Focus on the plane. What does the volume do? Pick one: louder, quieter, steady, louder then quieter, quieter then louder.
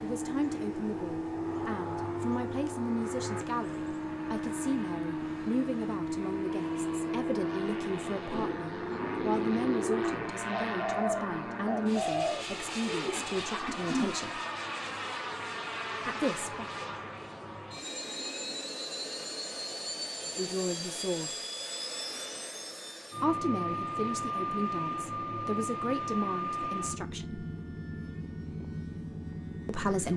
steady.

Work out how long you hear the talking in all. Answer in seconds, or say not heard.
21 s.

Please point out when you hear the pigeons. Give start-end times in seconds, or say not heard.
8.0-14.2.